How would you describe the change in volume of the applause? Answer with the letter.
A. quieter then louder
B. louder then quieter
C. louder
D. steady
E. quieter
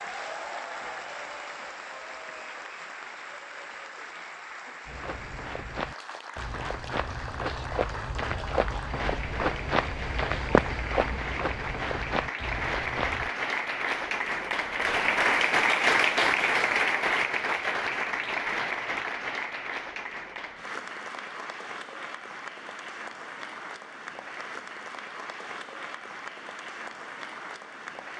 B.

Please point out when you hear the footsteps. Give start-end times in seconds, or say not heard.
4.8-13.3.